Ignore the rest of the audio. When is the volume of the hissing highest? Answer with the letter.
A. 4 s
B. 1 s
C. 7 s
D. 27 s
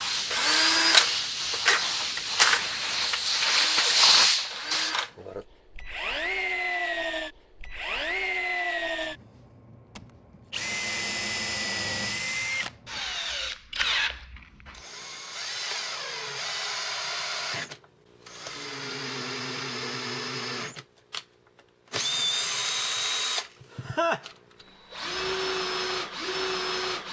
A.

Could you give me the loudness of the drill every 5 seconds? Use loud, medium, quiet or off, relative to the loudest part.
loud, medium, medium, medium, medium, medium.